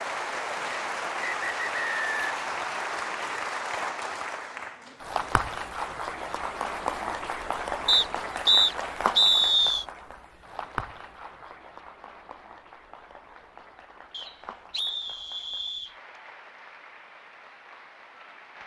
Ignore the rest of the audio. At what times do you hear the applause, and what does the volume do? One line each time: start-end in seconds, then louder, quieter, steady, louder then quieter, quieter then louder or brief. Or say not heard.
0.0-18.6 quieter.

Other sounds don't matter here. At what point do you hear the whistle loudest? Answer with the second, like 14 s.
9 s.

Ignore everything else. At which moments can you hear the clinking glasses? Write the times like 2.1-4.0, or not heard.
not heard.